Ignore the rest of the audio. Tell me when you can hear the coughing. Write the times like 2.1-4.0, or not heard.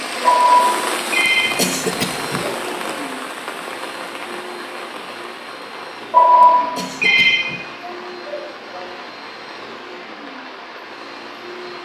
1.2-2.5, 6.4-7.6.